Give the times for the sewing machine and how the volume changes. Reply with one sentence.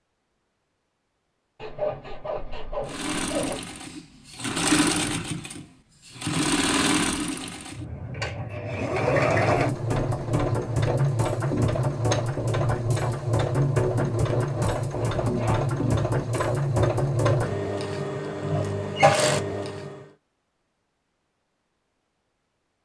You can hear the sewing machine from 2.9 to 20.1 s, at a steady volume.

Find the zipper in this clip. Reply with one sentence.
The zipper can be heard from 1.6 to 3.8 s and from 14.3 to 15.9 s.